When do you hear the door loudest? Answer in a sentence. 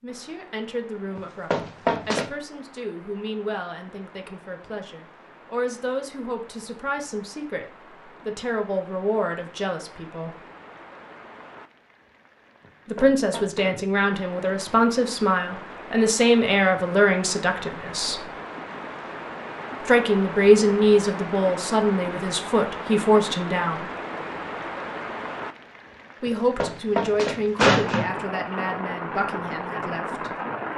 The loudest moment of the door is at 28 seconds.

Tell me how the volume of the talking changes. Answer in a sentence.
The loudness of the talking goes up, then down.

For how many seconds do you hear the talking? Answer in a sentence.
You can hear the talking for 24 seconds altogether.